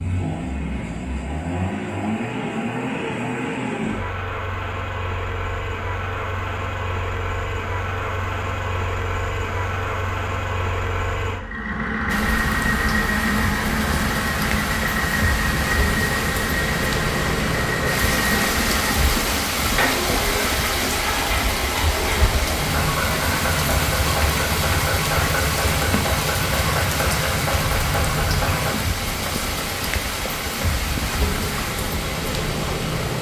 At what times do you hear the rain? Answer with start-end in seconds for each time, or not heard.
12.1-33.1.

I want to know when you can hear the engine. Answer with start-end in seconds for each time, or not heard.
0.0-28.8.